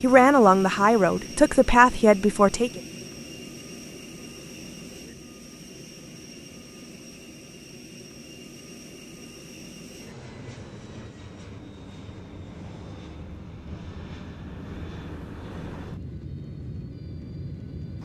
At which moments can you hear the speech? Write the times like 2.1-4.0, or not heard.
0.0-2.8.